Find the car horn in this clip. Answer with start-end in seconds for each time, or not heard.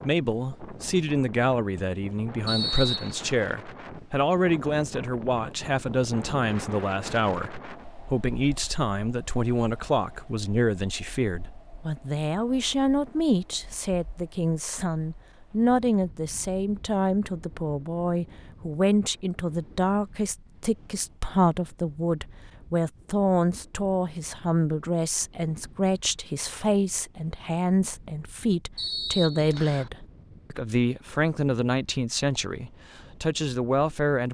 not heard.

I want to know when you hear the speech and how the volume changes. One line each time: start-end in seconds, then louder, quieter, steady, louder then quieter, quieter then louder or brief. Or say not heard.
0.0-34.2 steady.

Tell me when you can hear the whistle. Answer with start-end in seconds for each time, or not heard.
2.5-3.2, 28.8-29.9.